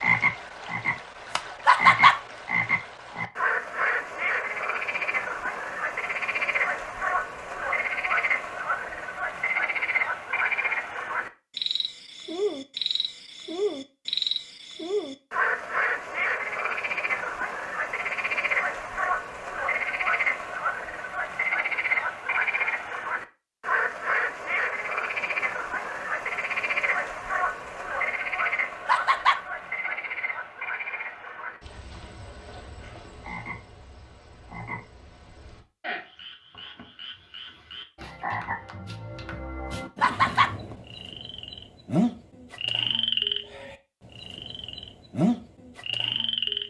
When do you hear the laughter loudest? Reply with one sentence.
The volume of the laughter peaks at 2 seconds.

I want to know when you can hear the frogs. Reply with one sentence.
The frogs can be heard from 0.0 to 46.6 s.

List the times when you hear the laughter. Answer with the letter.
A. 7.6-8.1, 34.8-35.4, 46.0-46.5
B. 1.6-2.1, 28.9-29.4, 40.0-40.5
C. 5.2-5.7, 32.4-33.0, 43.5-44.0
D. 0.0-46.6
B.